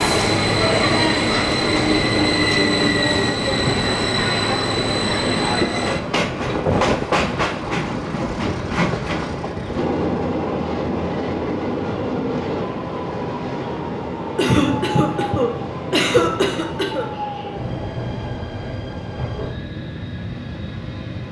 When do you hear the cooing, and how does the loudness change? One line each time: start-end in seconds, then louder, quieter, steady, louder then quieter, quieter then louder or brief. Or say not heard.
not heard.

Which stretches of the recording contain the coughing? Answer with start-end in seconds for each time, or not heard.
14.3-17.1.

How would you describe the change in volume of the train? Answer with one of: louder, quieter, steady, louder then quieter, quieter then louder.
quieter.